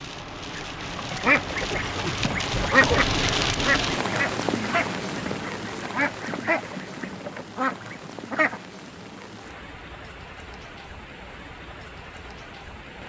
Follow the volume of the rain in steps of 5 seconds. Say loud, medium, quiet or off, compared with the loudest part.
loud, medium, quiet.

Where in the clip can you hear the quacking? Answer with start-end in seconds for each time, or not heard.
0.5-8.6.